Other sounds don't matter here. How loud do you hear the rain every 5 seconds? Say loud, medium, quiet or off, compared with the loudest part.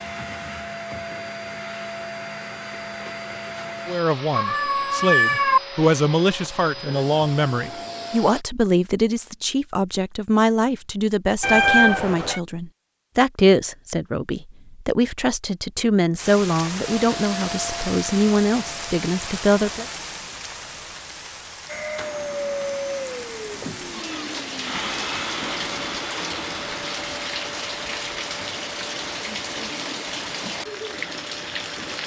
off, off, off, loud, medium, loud, loud.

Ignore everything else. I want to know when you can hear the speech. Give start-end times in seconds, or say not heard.
3.9-19.9.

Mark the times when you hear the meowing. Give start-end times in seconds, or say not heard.
4.3-5.6, 11.4-12.4, 23.5-26.0.